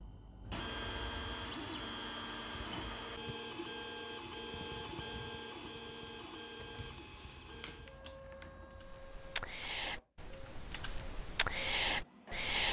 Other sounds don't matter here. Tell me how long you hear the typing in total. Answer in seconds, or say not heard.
4 s.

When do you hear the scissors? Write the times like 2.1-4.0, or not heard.
0.4-1.4, 6.5-8.9.